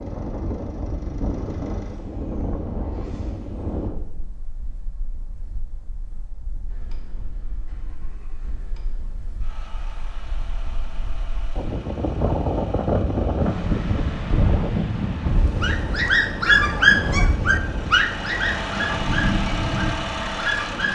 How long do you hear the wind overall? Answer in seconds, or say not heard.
21 s.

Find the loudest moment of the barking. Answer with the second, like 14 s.
17 s.